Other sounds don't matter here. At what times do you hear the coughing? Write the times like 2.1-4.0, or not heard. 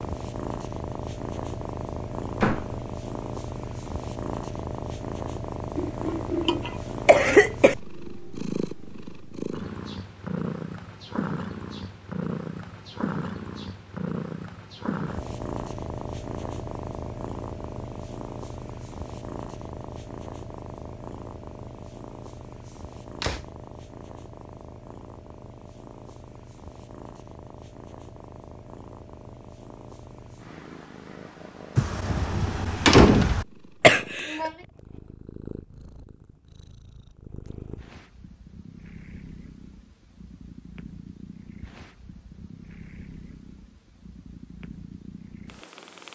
5.8-7.8, 33.8-34.5.